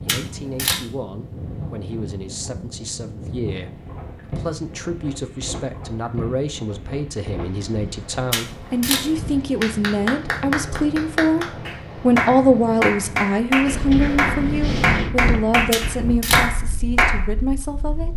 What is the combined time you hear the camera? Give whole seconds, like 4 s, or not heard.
2 s.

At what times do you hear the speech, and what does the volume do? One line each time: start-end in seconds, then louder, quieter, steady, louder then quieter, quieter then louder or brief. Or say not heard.
0.1-18.1 louder then quieter.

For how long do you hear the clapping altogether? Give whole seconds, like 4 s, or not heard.
8 s.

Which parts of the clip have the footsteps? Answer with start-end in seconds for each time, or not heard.
not heard.